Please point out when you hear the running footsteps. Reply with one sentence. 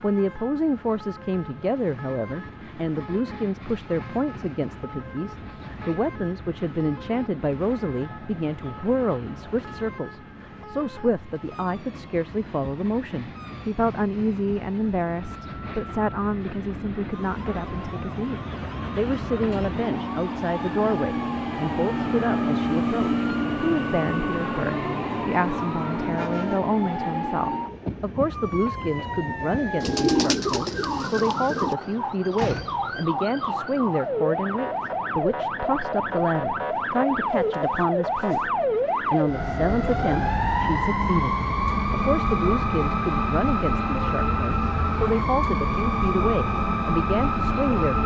You can't hear the running footsteps here.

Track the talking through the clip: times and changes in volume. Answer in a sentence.
The talking can be heard from 0.0 to 38.5 s, at a steady volume; and from 39.1 to 48.0 s, at a steady volume.